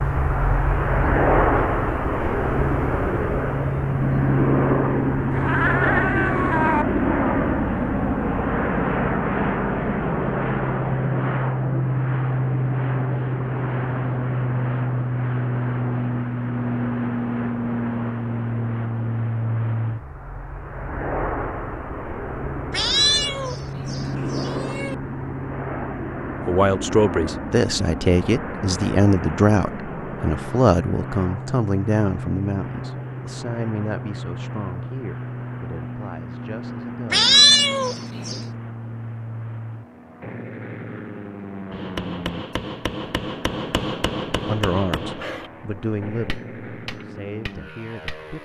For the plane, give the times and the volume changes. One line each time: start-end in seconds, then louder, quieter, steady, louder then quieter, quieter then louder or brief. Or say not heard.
0.0-48.4 quieter.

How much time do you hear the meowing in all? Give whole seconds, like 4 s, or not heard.
5 s.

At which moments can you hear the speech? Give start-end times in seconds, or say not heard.
26.4-37.3, 44.5-48.4.